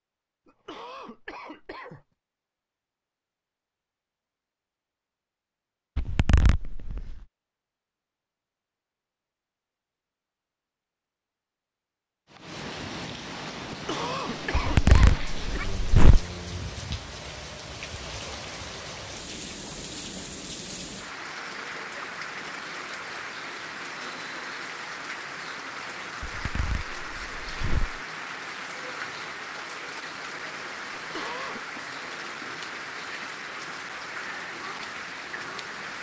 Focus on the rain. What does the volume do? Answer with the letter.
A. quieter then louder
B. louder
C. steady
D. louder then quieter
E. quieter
C.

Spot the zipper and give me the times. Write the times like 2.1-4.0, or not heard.
6.0-7.2, 14.5-16.2, 26.2-28.0.